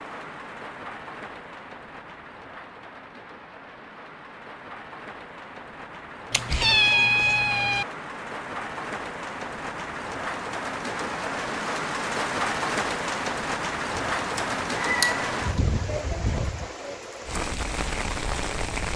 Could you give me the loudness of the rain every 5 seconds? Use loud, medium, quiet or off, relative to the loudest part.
quiet, medium, loud, loud.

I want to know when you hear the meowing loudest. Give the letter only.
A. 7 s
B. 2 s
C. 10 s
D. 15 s
A.